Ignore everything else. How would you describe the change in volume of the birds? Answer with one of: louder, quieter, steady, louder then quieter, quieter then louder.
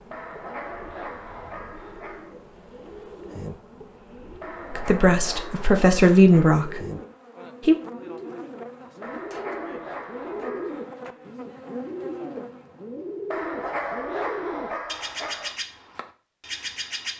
louder.